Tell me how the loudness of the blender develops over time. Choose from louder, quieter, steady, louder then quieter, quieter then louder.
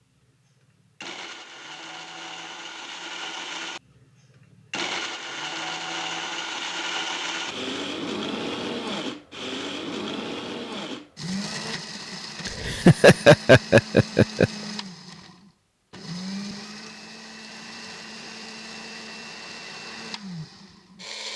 louder then quieter.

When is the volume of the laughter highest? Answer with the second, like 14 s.
13 s.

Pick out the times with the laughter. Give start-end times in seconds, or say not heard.
12.4-14.5.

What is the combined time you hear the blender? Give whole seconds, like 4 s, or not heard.
21 s.